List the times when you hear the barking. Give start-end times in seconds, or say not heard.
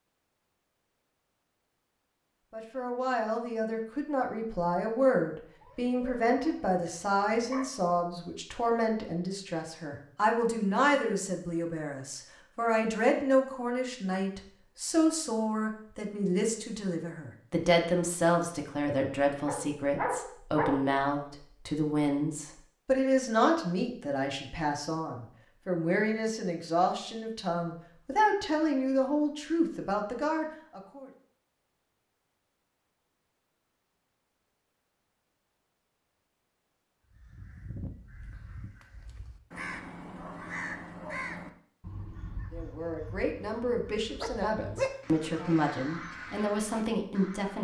5.6-7.7, 19.4-20.9, 44.2-45.5.